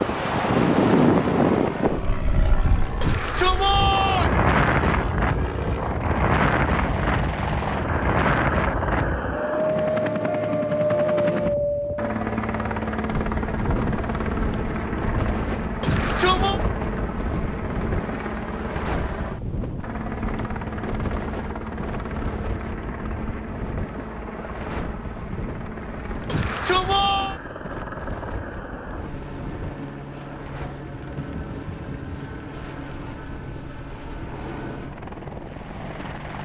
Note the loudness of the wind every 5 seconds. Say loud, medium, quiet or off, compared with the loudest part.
loud, loud, medium, medium, quiet, quiet, quiet, quiet.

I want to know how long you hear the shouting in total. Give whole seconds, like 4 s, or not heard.
3 s.